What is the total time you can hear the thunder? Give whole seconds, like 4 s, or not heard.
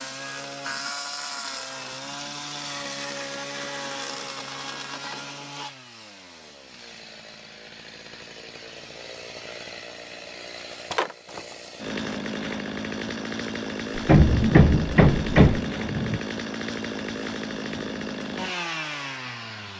2 s.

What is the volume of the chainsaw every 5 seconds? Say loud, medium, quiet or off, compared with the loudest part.
loud, medium, loud, loud.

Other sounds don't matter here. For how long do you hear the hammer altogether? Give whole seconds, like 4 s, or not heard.
2 s.